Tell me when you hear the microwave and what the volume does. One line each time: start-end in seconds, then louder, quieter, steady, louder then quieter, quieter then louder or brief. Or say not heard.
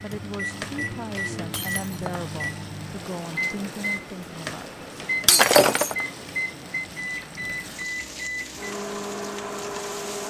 0.0-10.2 steady.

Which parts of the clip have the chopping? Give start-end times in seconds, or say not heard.
not heard.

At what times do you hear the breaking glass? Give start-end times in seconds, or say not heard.
1.5-2.0, 5.2-6.0.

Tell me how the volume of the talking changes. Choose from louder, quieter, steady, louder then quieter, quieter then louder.
steady.